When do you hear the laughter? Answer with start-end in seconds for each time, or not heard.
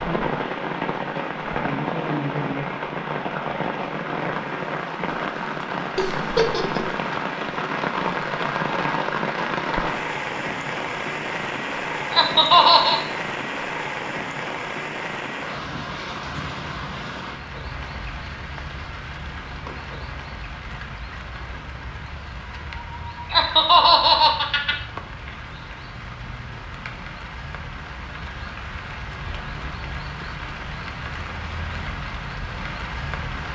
6.0-6.9, 12.1-13.1, 23.3-24.8.